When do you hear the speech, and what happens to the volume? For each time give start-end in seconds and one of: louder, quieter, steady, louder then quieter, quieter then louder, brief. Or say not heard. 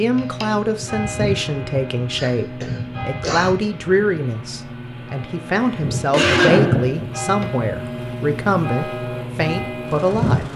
0.0-10.5 steady.